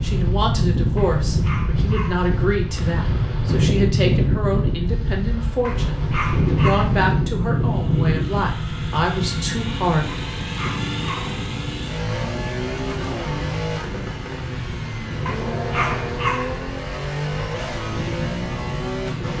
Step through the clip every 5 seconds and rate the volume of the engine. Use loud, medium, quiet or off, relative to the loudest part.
off, medium, loud, loud.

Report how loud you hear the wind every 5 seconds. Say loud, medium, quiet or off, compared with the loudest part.
loud, loud, medium, medium.